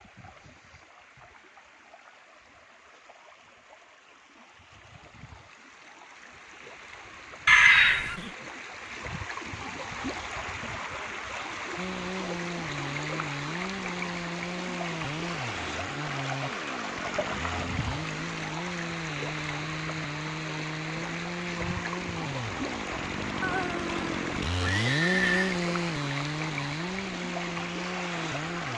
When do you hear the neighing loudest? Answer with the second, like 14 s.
8 s.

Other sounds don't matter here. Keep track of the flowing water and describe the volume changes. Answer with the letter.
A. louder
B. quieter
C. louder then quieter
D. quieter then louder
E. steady
A.